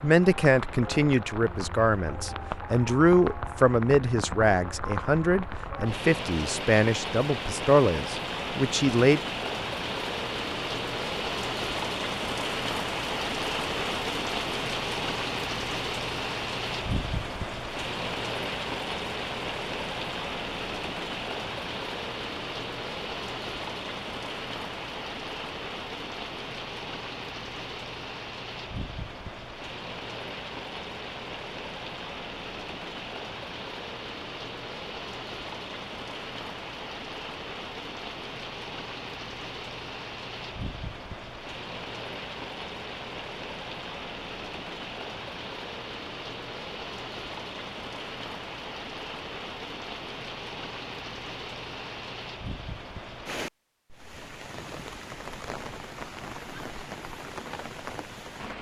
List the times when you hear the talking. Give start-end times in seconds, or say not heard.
0.0-9.2.